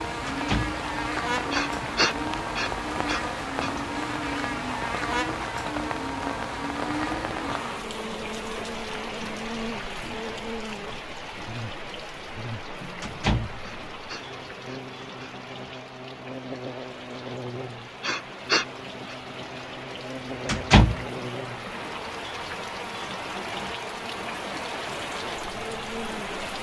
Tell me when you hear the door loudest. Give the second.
21 s.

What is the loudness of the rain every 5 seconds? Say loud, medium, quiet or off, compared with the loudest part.
loud, loud, medium, medium, loud, loud.